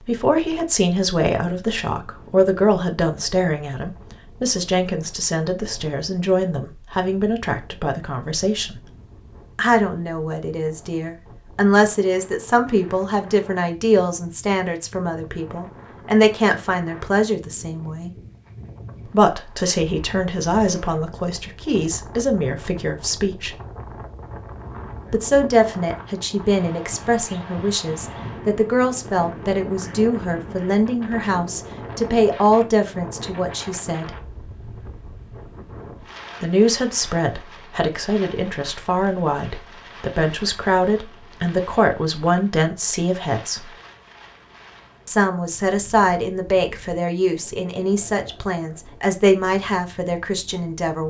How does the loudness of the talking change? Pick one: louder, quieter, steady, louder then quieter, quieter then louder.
steady.